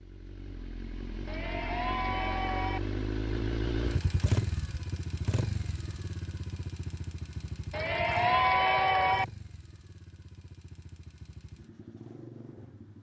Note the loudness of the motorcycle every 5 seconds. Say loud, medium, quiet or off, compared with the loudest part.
loud, medium, quiet.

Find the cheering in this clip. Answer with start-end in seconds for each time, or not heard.
1.2-2.8, 7.7-9.2.